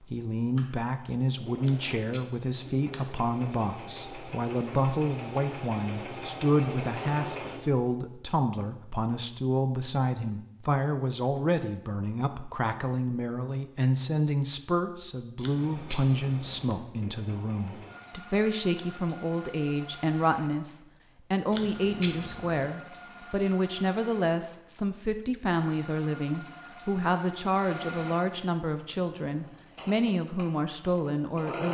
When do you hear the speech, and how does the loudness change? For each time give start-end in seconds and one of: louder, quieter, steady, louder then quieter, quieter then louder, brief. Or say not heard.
0.0-31.6 steady.